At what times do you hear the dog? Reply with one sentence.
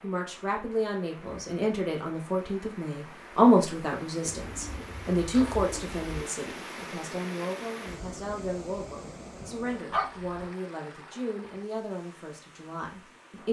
The dog can be heard from 9.9 to 10.4 s.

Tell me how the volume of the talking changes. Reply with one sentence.
The volume of the talking goes up, then down.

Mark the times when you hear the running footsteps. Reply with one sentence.
You can't hear the running footsteps here.